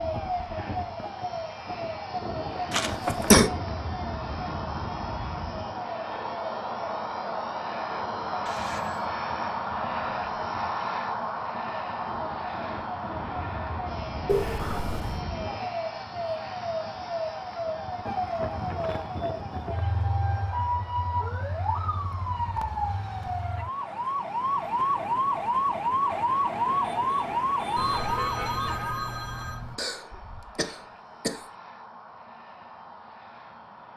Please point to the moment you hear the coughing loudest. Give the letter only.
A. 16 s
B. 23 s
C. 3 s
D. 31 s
C.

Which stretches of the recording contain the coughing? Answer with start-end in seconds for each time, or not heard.
2.7-3.5, 29.8-31.4.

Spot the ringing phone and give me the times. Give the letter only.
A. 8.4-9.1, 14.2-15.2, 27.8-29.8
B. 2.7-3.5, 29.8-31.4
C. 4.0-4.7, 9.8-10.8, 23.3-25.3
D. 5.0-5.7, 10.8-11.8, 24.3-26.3
A.